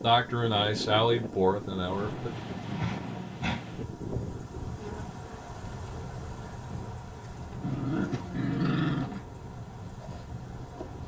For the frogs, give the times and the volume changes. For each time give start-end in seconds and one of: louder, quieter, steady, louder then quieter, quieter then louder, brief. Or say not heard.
not heard.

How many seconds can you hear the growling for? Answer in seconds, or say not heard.
3 s.